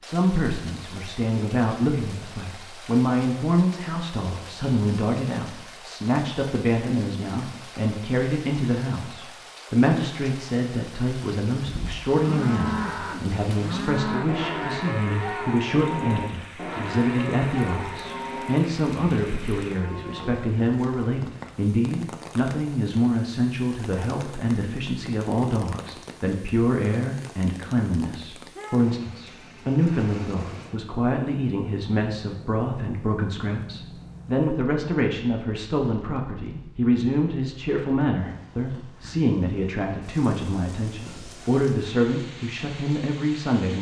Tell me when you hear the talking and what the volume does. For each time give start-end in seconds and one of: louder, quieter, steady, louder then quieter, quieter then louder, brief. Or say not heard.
0.0-43.7 steady.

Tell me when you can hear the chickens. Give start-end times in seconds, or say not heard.
not heard.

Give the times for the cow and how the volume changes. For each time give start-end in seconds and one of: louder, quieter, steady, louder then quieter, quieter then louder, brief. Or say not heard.
11.6-20.4 quieter.